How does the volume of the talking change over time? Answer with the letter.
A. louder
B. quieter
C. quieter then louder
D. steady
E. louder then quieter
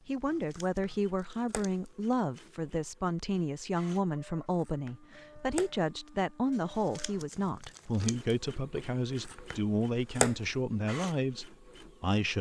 D.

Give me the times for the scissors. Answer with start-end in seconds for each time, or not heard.
0.6-1.7, 4.7-5.7, 9.2-10.6.